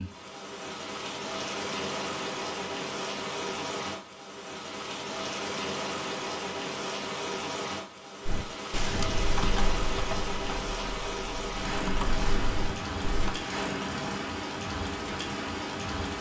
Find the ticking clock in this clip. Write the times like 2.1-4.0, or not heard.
not heard.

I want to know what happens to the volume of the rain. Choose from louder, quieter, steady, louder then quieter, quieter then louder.
steady.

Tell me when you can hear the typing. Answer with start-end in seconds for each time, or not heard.
8.2-13.3.